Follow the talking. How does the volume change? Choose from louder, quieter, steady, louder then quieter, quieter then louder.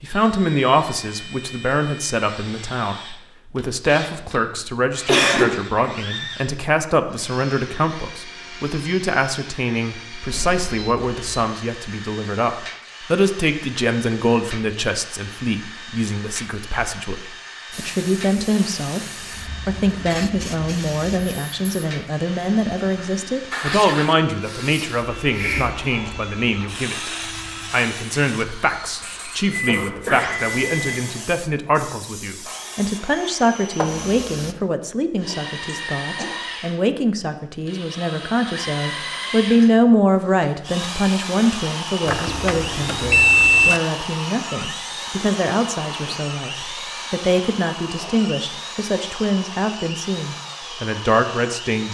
steady.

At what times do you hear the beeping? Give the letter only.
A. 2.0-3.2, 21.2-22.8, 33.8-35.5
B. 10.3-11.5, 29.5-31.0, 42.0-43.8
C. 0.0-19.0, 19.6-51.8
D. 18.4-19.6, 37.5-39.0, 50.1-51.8
B.